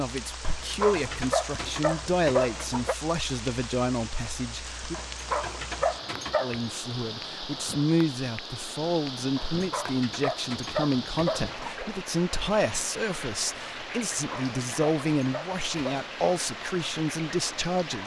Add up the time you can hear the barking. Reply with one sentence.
You can hear the barking for 9 seconds altogether.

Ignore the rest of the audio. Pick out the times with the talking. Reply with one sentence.
The talking can be heard from 0.0 to 5.0 s and from 6.4 to 18.0 s.